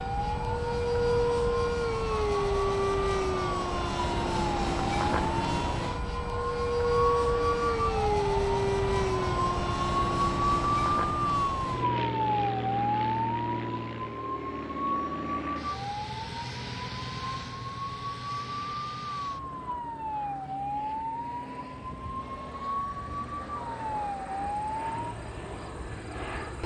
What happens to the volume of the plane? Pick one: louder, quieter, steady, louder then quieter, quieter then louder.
quieter.